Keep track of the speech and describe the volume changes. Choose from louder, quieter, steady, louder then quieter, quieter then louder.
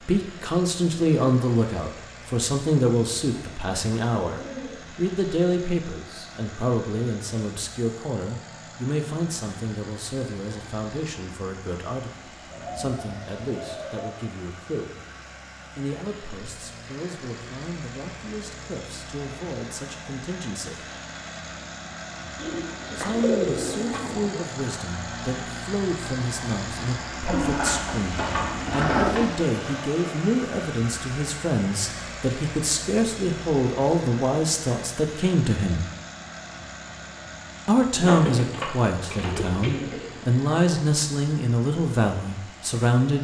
quieter then louder.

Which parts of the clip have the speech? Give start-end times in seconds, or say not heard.
0.0-14.9, 15.8-20.9, 22.9-35.9, 37.6-43.2.